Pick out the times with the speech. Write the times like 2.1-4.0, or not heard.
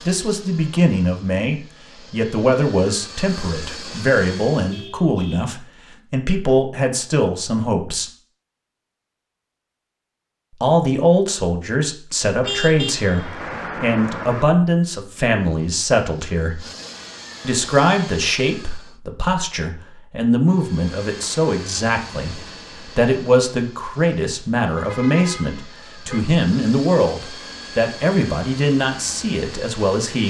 0.1-8.1, 10.6-16.6, 17.4-30.2.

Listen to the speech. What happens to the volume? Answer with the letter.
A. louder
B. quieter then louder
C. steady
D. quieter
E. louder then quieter
C.